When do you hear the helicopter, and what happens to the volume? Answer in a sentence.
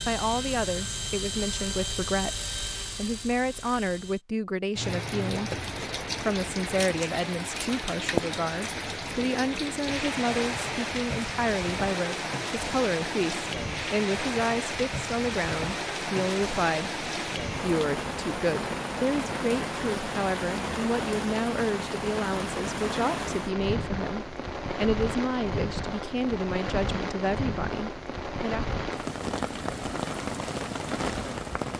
The helicopter can be heard from 0.0 to 4.2 s, getting quieter.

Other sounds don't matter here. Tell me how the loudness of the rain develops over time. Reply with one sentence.
The volume of the rain stays about the same.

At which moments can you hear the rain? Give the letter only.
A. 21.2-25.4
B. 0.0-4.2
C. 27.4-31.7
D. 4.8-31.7
D.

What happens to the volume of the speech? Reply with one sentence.
The loudness of the speech stays about the same.